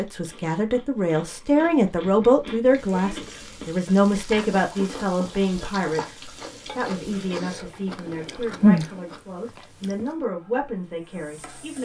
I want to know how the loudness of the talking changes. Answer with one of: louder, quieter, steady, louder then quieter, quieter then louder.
quieter.